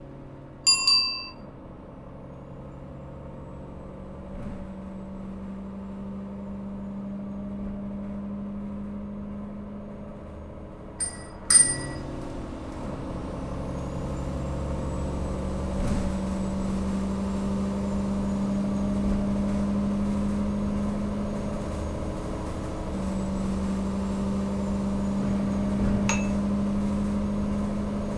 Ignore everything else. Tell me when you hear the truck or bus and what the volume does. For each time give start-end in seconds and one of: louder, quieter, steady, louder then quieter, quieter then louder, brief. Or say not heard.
0.0-28.1 louder.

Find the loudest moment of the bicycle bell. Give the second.
1 s.